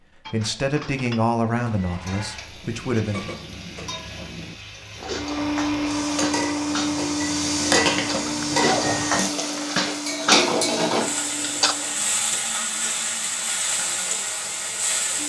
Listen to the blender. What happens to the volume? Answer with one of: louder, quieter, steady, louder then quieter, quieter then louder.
quieter.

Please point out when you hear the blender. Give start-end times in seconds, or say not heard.
5.1-15.2.